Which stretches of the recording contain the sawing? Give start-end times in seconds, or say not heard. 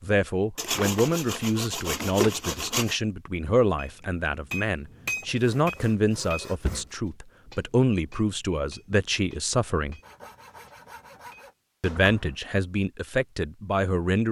0.6-3.0, 5.3-7.0, 10.0-11.6.